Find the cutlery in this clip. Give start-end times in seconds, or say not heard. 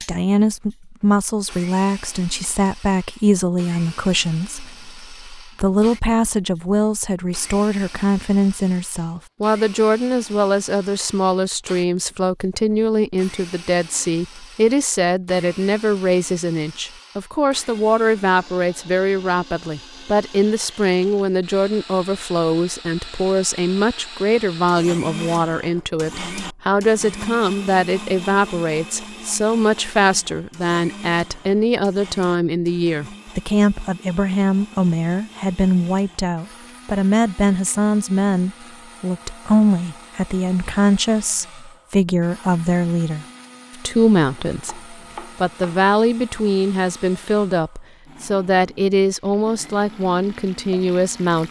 not heard.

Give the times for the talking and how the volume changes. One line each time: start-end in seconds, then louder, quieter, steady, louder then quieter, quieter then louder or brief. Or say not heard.
0.0-51.4 steady.